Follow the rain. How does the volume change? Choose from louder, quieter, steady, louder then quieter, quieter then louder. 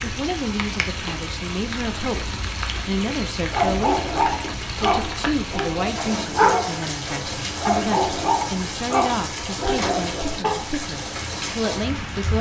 steady.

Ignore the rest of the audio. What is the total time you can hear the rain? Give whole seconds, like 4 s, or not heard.
12 s.